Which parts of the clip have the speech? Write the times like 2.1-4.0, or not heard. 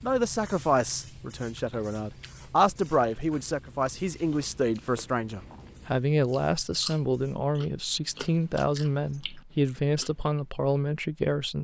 0.0-11.5.